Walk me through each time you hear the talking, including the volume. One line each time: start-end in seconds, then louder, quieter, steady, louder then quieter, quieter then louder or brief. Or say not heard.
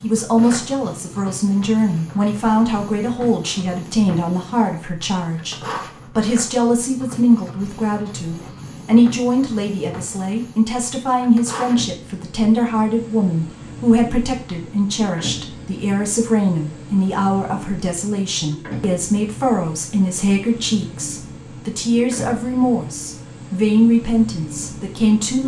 0.0-25.4 steady.